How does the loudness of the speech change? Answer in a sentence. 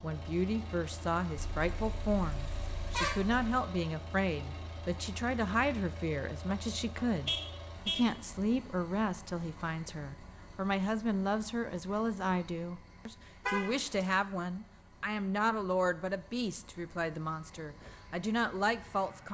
The volume of the speech stays about the same.